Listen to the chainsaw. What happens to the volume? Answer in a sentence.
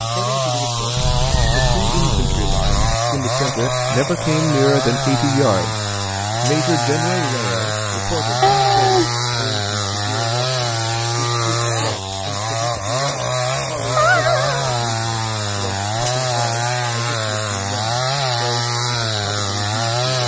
The loudness of the chainsaw stays about the same.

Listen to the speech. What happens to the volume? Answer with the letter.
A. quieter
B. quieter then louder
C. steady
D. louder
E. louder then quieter
E.